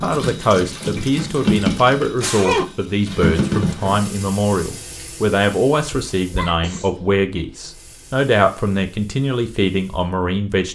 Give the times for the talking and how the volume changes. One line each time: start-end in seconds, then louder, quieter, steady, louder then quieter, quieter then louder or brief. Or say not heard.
0.0-10.6 steady.